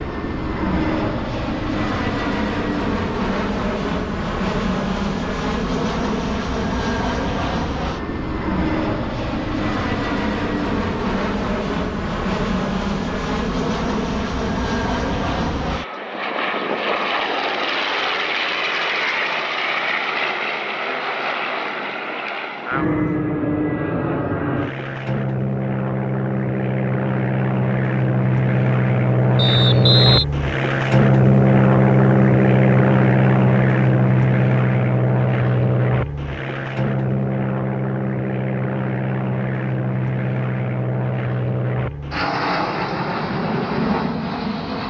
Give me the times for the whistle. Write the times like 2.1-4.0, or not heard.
29.4-30.2.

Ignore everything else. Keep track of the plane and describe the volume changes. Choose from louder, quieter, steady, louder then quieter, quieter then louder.
louder then quieter.